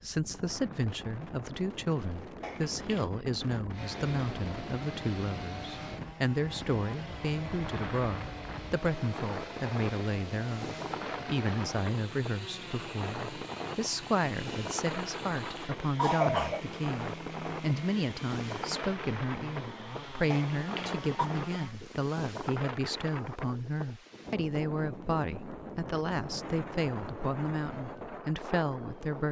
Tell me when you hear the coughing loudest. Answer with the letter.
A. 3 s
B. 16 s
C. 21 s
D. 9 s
B.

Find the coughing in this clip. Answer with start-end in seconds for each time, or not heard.
2.4-3.0, 15.1-16.6, 20.3-21.3.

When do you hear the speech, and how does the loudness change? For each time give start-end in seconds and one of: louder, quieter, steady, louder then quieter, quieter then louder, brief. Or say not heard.
0.0-29.2 steady.